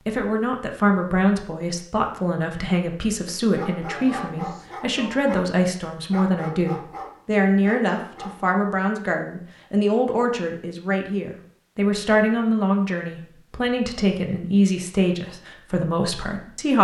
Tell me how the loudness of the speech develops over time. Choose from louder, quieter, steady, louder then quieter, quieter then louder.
steady.